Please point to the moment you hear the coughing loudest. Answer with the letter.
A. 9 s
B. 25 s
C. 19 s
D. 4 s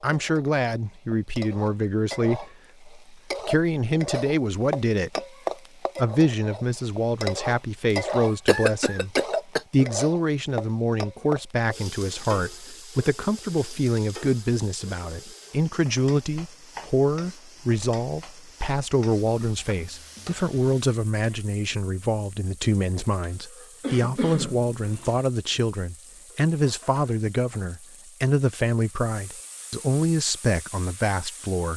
A.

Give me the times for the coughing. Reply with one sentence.
The coughing can be heard from 8.1 to 9.8 s and from 23.8 to 25.2 s.